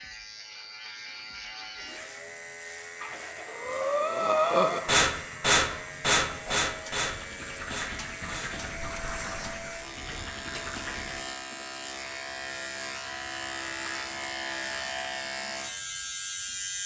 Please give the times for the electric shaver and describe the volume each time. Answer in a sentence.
You can hear the electric shaver from 0.0 to 16.8 s, getting louder.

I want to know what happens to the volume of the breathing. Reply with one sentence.
The loudness of the breathing goes down.